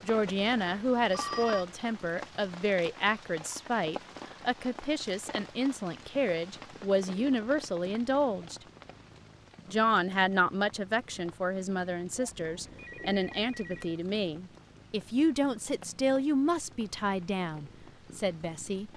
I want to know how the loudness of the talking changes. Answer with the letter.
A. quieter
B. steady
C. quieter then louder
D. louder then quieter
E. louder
B.